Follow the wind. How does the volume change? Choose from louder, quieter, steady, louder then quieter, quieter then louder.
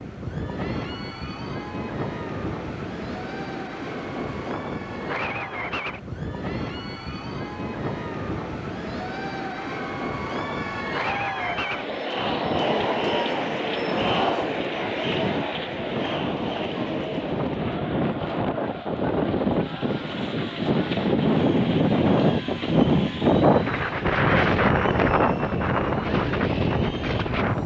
louder.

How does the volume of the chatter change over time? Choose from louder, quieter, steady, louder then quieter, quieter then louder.
louder then quieter.